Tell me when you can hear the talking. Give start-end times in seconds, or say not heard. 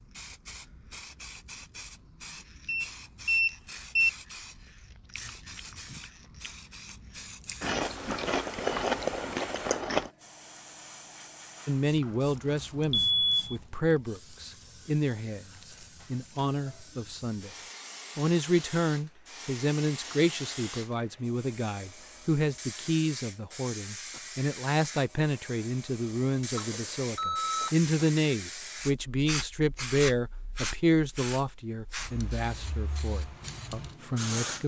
11.7-15.4, 16.1-17.5, 18.1-34.6.